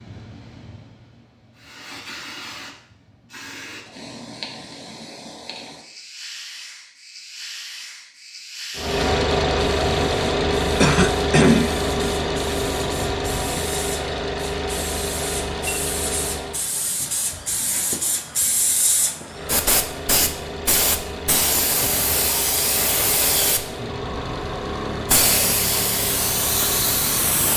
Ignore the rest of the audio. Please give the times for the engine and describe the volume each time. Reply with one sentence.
You can hear the engine from 8.8 to 16.6 s, getting quieter; and from 19.2 to 27.5 s, at a steady volume.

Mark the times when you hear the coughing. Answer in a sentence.
The coughing can be heard from 10.8 to 11.8 s.